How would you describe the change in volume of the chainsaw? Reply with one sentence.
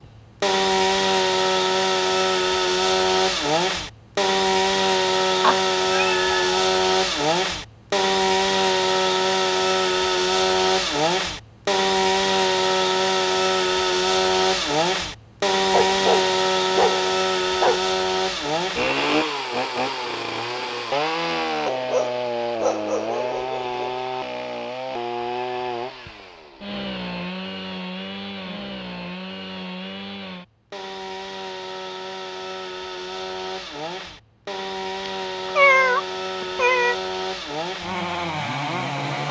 The loudness of the chainsaw goes down.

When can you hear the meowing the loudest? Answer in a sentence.
The volume of the meowing peaks at 36 seconds.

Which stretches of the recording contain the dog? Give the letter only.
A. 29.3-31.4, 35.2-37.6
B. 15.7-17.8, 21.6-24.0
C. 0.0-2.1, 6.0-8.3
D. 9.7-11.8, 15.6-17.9
B.